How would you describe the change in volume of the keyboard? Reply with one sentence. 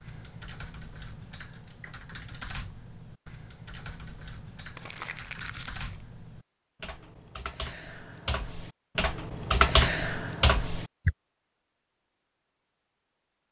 The volume of the keyboard goes up.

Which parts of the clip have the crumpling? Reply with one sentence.
You can hear the crumpling from 4.8 to 6.0 s.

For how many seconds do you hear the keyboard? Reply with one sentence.
The keyboard can be heard for 11 seconds in total.